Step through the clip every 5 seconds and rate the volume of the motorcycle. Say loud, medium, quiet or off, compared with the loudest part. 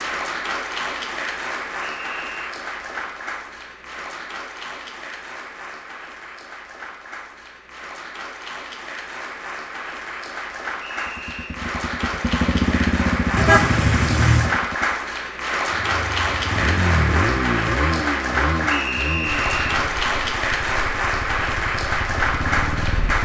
off, off, loud, loud, medium.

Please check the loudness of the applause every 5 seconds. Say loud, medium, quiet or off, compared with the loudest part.
medium, quiet, loud, loud, loud.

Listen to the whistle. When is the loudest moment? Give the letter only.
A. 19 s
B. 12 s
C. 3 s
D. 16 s
A.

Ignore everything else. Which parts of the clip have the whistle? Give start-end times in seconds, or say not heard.
1.8-2.5, 10.8-11.6, 18.6-19.8.